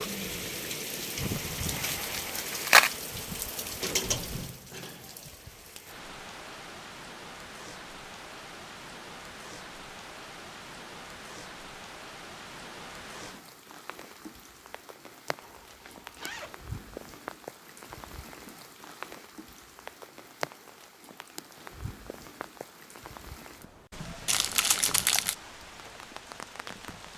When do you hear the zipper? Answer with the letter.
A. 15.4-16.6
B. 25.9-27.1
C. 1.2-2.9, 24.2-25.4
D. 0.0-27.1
A.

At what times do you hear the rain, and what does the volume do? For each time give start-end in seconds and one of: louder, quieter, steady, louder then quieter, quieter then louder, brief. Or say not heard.
0.0-27.1 quieter.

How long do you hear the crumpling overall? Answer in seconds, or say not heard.
3 s.